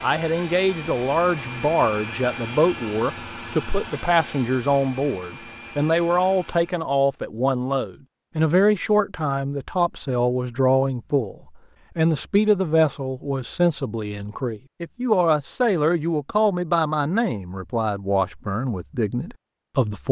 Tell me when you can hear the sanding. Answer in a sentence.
You can't hear the sanding here.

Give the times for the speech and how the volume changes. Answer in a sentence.
You can hear the speech from 0.0 to 20.0 s, at a steady volume.